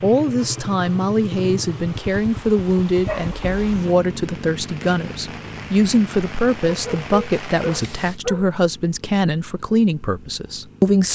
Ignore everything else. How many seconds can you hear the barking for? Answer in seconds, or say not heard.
3 s.